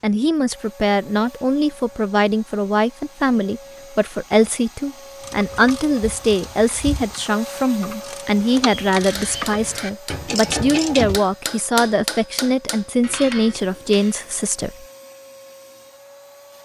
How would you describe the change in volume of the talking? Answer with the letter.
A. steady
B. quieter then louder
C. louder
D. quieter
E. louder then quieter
A.